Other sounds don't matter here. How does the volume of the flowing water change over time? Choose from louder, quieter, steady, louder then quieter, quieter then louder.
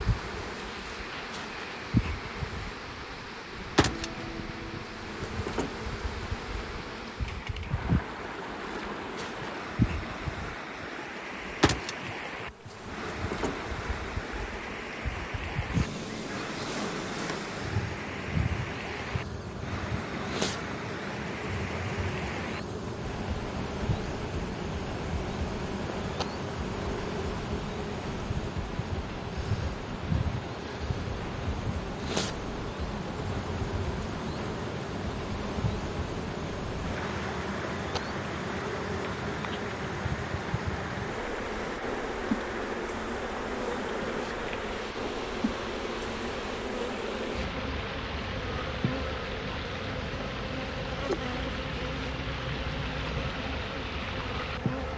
steady.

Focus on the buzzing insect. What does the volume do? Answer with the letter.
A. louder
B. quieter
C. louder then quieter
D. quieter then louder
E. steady
E.